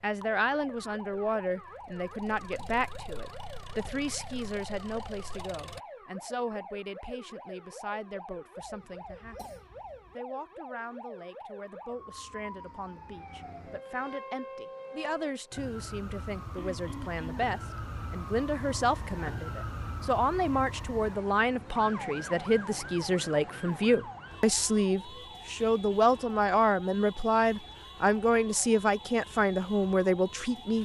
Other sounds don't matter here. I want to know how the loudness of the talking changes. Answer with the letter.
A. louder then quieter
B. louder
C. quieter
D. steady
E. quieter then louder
E.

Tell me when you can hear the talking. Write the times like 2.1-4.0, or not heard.
0.0-30.8.